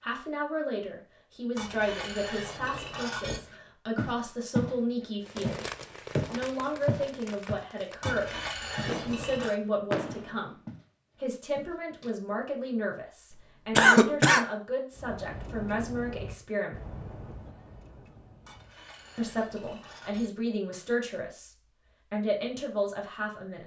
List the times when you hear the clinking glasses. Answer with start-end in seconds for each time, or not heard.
1.6-3.4, 8.0-9.6, 18.4-20.3.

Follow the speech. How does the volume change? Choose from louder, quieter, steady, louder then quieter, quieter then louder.
steady.